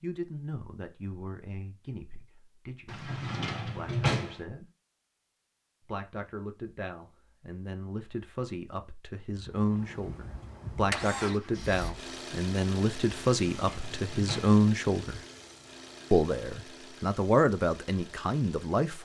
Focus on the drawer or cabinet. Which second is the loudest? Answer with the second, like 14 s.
4 s.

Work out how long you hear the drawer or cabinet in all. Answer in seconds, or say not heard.
3 s.